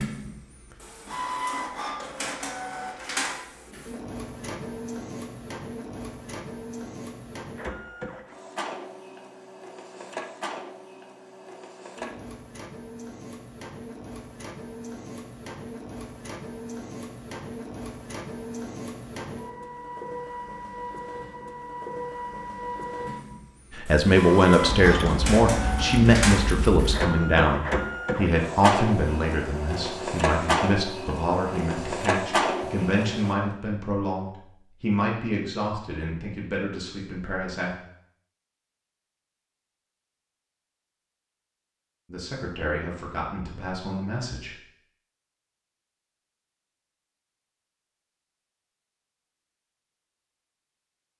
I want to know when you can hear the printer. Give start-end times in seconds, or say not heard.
0.0-33.4.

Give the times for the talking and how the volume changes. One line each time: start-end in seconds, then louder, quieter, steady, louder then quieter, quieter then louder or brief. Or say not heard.
23.8-37.8 quieter
42.1-44.5 brief.